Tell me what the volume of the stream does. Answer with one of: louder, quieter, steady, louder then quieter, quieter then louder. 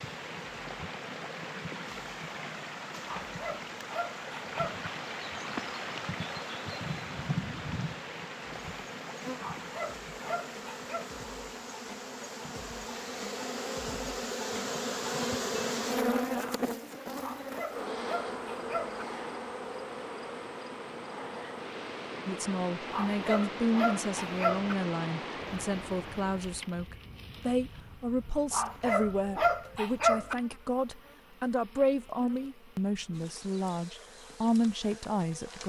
quieter then louder.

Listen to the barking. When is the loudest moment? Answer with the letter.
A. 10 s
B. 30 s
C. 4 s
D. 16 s
B.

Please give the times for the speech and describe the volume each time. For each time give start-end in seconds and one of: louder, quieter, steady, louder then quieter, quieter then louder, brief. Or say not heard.
22.2-35.6 steady.